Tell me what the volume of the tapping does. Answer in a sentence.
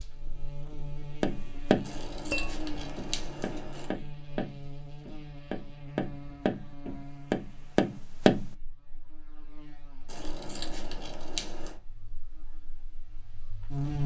The loudness of the tapping goes down, then up.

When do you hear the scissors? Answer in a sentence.
You can hear the scissors from 1.8 to 4.0 s and from 10.1 to 11.8 s.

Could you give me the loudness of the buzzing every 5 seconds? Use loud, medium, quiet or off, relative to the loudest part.
medium, medium, loud.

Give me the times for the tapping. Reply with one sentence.
The tapping can be heard from 1.2 to 8.4 s.